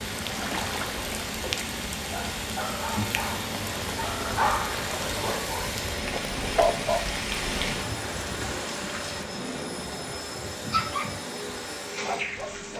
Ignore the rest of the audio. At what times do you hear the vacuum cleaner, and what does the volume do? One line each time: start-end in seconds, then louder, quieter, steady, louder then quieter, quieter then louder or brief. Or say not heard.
0.0-12.7 louder.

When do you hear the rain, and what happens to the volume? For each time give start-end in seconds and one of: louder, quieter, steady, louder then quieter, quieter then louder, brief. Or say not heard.
0.0-12.7 quieter.